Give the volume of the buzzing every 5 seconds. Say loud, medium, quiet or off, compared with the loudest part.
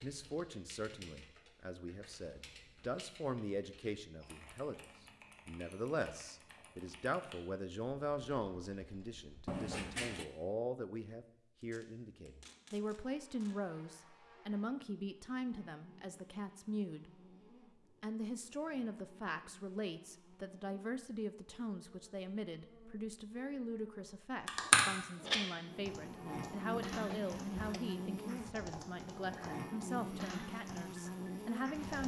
off, off, quiet, quiet, quiet, loud, loud.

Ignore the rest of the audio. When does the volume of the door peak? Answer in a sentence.
The volume of the door peaks at 10 seconds.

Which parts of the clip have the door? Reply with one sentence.
The door can be heard from 9.4 to 10.2 s and from 26.9 to 27.8 s.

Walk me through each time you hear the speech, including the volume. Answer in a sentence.
You can hear the speech from 0.0 to 17.1 s, at a steady volume; and from 18.0 to 32.0 s, at a steady volume.